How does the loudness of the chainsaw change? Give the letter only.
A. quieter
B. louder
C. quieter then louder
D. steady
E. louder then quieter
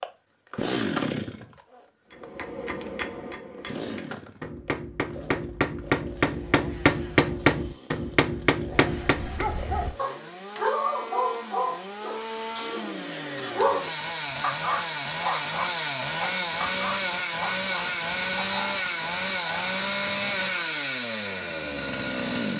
C.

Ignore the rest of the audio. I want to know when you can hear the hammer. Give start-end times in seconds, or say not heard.
2.1-9.4.